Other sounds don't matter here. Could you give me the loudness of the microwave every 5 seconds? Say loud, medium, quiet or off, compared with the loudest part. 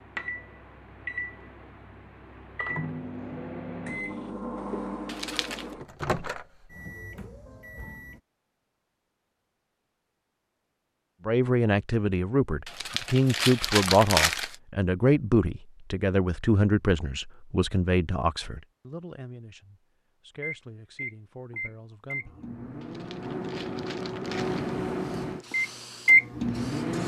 quiet, quiet, off, off, medium, loud.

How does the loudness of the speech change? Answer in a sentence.
The loudness of the speech goes down.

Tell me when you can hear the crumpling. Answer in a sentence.
You can hear the crumpling from 5.0 to 5.7 s, from 12.7 to 14.6 s and from 22.8 to 24.8 s.